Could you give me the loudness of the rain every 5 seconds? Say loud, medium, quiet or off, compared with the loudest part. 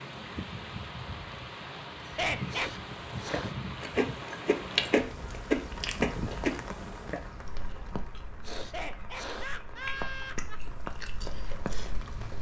loud, medium, loud.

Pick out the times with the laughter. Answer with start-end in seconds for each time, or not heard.
2.0-2.7, 8.6-10.6.